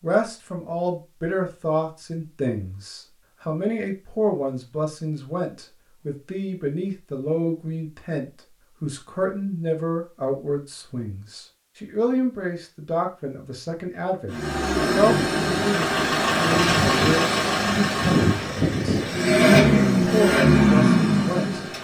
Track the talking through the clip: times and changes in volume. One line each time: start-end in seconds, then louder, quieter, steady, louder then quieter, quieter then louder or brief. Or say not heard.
0.0-21.6 steady.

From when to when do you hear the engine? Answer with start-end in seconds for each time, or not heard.
14.3-21.7.